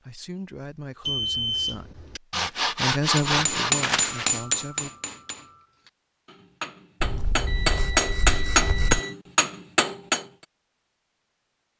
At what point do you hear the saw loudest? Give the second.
3 s.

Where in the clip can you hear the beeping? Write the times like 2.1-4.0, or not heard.
1.1-2.2, 7.5-9.2.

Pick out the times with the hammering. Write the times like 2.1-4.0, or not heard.
3.1-10.2.